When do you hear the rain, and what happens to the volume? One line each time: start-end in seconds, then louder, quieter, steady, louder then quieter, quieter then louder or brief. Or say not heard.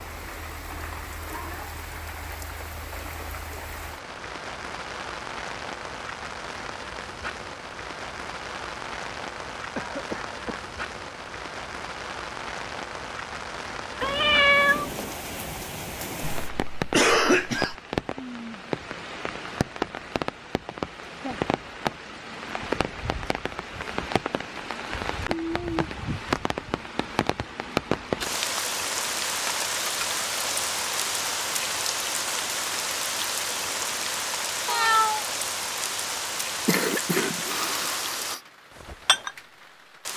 0.0-40.1 louder.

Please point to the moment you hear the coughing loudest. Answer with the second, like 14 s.
17 s.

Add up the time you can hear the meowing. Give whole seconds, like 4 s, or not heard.
2 s.